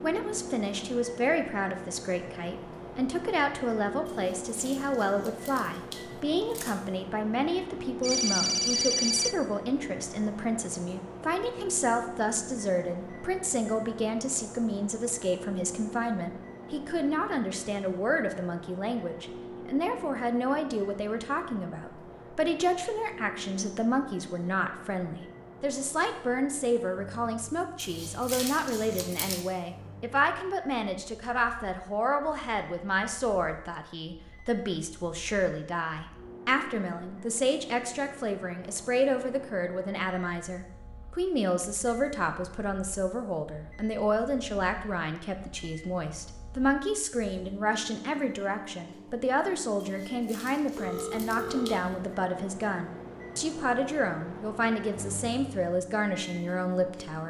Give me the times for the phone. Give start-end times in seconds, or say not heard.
8.0-9.3, 50.8-51.8.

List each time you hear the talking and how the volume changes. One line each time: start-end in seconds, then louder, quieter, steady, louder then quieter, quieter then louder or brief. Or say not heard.
0.0-57.2 steady.